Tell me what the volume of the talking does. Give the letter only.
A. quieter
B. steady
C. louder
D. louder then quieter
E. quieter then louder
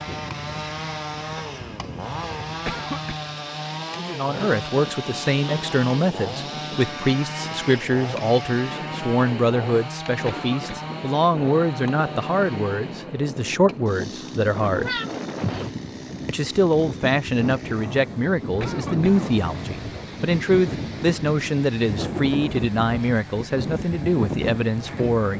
B.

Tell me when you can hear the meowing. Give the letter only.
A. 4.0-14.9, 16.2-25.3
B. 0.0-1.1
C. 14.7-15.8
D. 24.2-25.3
C.